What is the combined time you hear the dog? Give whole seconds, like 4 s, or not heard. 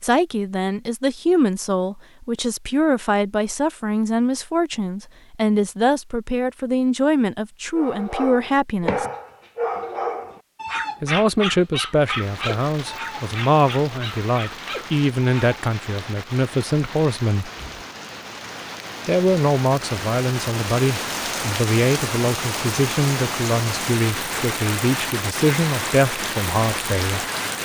8 s.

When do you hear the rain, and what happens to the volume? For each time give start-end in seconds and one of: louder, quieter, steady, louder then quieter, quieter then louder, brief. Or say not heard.
11.9-27.6 louder.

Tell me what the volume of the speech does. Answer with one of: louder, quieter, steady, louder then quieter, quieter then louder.
steady.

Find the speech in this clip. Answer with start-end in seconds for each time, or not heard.
0.0-9.1, 11.0-17.5, 19.1-27.2.